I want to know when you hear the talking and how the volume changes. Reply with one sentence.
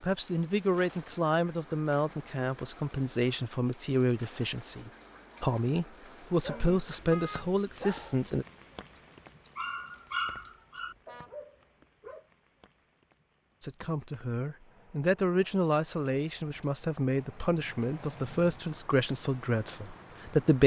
You can hear the talking from 0.0 to 8.4 s, at a steady volume; and from 13.6 to 20.6 s, at a steady volume.